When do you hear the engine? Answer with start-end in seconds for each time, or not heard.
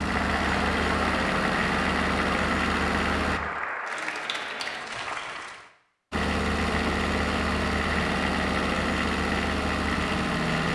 0.0-3.4, 6.1-10.7.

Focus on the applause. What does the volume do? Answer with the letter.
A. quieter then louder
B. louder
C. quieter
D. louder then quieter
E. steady
E.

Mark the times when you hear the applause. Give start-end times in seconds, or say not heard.
0.0-5.7.